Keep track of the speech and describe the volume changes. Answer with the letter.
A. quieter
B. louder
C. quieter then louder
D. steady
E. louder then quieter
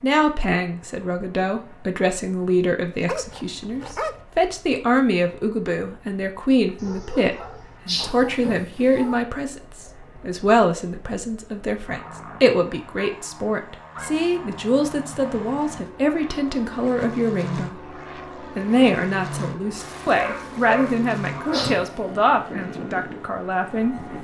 D.